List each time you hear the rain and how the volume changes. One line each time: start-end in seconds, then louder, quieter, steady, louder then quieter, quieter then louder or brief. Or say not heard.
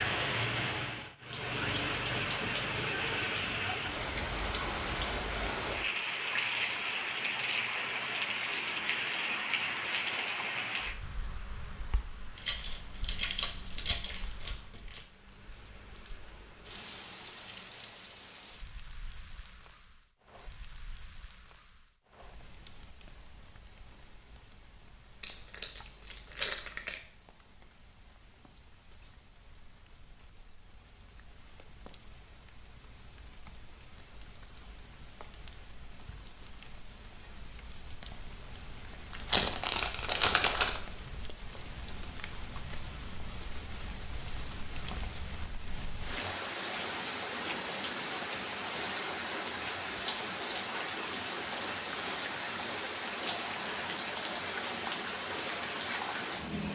0.0-56.6 quieter then louder.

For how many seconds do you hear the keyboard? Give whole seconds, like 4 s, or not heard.
not heard.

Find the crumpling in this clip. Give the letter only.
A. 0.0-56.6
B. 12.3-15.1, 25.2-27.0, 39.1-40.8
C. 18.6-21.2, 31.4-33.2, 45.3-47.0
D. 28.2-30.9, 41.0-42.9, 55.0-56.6
B.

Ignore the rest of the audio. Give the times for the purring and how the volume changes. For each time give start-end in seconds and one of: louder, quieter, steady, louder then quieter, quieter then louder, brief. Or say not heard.
not heard.